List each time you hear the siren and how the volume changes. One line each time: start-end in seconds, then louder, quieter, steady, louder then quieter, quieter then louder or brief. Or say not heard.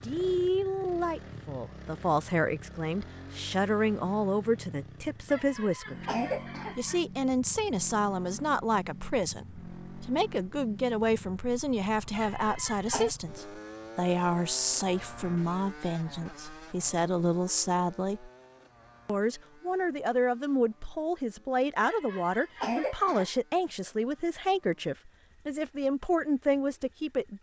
not heard.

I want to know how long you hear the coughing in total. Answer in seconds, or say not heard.
4 s.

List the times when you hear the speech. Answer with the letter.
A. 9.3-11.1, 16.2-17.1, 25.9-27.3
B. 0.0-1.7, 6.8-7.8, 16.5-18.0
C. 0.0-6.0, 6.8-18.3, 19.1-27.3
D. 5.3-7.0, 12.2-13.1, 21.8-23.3
C.